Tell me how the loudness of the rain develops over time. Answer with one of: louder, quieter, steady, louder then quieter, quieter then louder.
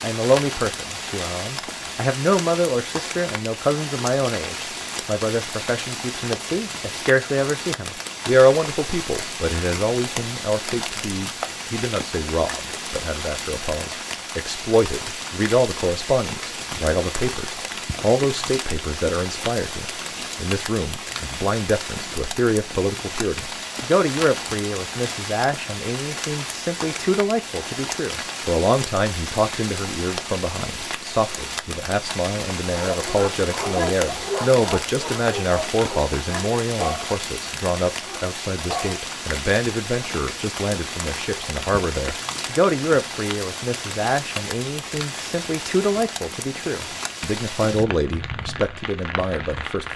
steady.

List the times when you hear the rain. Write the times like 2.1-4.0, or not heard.
0.0-49.9.